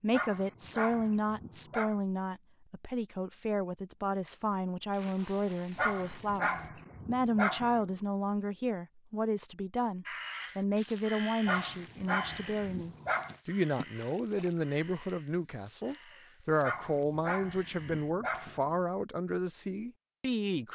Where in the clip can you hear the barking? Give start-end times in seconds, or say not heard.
0.1-1.9, 5.8-7.8, 11.4-13.3, 16.6-18.8.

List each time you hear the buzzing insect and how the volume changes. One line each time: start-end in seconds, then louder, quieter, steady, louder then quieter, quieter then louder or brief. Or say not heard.
not heard.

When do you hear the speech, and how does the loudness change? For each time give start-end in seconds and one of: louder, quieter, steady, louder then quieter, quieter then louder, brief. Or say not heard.
0.0-20.6 steady.